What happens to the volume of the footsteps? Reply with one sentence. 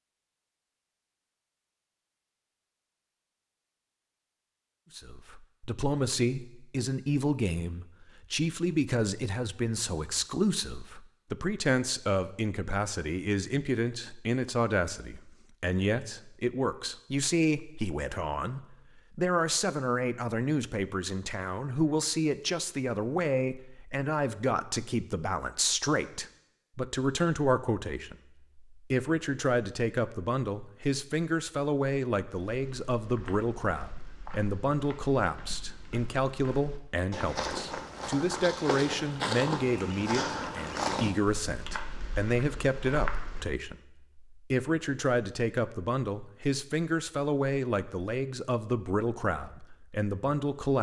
The volume of the footsteps goes up, then down.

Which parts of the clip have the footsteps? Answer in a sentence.
The footsteps can be heard from 32.3 to 43.5 s.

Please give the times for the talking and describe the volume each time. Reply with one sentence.
You can hear the talking from 5.0 to 50.7 s, at a steady volume.